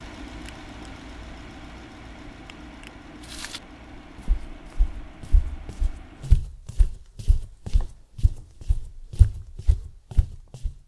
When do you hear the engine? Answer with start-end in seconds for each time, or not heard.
0.0-6.3.